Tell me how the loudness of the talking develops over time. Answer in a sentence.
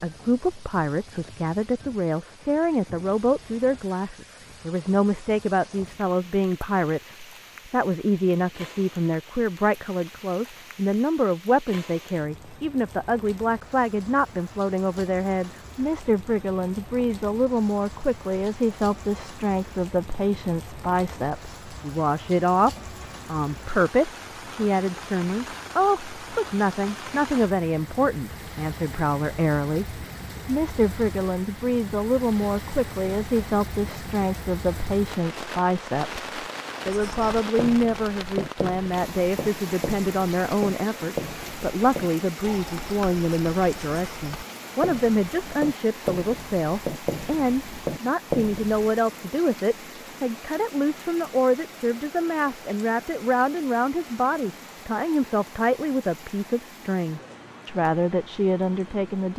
The loudness of the talking stays about the same.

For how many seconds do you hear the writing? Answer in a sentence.
The writing can be heard for 12 seconds in total.